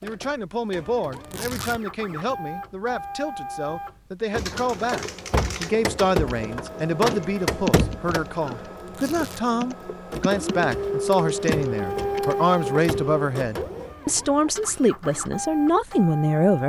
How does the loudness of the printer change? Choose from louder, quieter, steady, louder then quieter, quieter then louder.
louder then quieter.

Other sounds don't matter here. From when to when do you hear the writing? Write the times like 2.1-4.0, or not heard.
not heard.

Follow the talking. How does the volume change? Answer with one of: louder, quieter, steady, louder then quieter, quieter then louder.
louder.